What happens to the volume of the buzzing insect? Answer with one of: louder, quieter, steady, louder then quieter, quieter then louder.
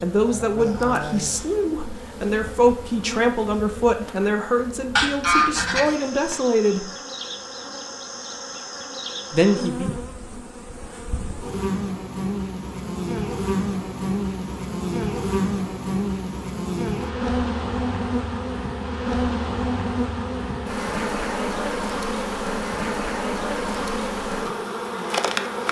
louder.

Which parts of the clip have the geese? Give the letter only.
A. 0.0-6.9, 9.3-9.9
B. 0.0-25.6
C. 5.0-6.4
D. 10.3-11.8
C.